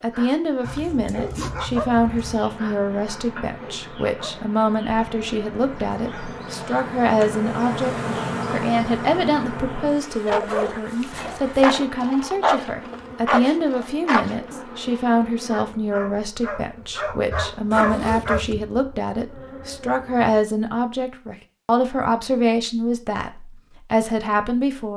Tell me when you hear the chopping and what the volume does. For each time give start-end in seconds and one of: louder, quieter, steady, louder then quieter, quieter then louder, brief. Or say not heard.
not heard.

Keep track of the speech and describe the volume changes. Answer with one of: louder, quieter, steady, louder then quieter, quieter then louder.
steady.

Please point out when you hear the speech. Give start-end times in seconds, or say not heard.
0.0-24.9.